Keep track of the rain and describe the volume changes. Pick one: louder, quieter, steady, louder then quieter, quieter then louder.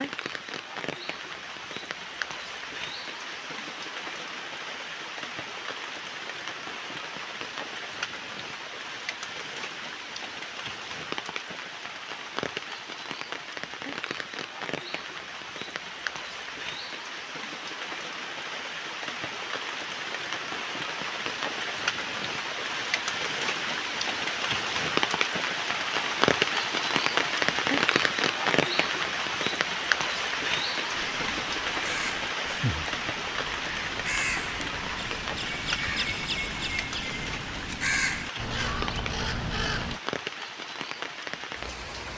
louder then quieter.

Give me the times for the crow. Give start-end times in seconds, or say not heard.
30.9-40.0.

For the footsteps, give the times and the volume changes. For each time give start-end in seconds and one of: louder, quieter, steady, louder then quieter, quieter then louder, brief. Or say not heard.
not heard.